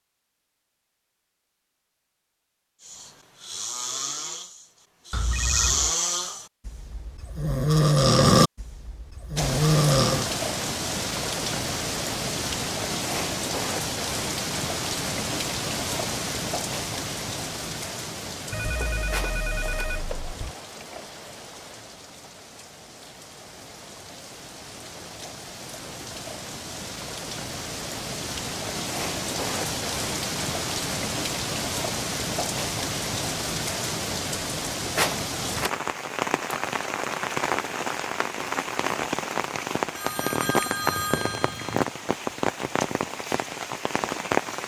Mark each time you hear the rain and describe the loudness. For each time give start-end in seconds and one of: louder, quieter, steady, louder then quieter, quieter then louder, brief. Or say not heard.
9.3-44.6 quieter then louder.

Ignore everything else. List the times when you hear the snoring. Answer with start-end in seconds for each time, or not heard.
2.9-10.2.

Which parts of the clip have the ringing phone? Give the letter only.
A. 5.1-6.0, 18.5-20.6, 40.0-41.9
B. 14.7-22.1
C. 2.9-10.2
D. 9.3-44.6
A.